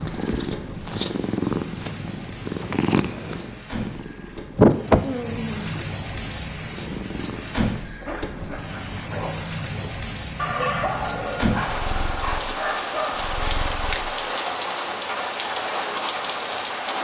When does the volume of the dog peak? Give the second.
11 s.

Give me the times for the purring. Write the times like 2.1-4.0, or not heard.
0.0-7.6, 11.7-14.2.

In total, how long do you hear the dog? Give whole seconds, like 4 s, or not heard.
5 s.